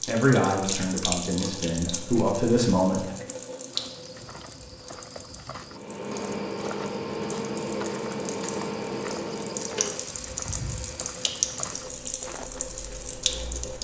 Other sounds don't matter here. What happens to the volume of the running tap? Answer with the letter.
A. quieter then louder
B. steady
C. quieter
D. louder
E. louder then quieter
A.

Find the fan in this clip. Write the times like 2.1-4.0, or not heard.
5.7-13.8.